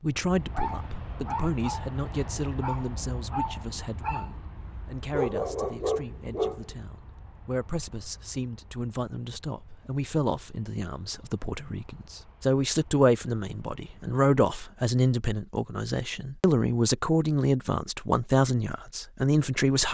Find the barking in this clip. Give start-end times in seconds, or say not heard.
0.3-6.6.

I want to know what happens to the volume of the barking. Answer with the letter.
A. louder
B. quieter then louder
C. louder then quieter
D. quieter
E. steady
A.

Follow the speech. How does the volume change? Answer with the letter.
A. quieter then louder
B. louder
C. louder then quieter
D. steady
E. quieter
B.